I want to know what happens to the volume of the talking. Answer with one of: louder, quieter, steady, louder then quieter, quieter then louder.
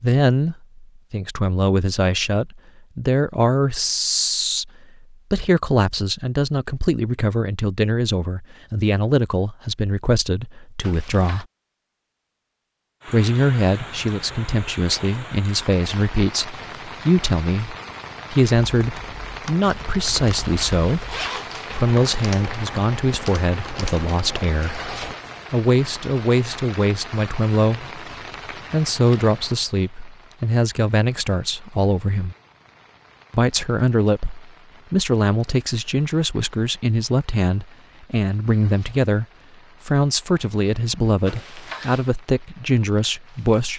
steady.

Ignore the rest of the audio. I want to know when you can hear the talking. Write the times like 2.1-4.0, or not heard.
0.0-11.4, 13.1-24.9, 25.5-32.4, 33.3-39.2, 39.9-43.7.